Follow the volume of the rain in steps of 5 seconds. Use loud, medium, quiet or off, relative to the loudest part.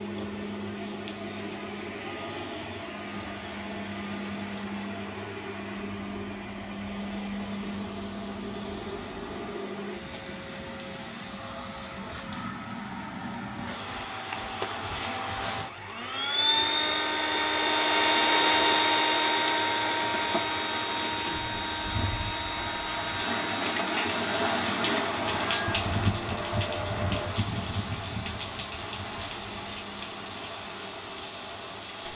quiet, quiet, quiet, medium, loud, loud, medium.